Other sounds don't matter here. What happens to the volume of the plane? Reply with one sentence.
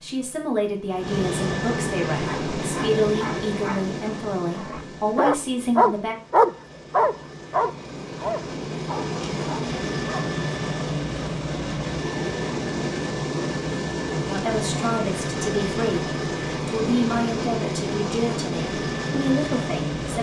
The volume of the plane goes down, then up.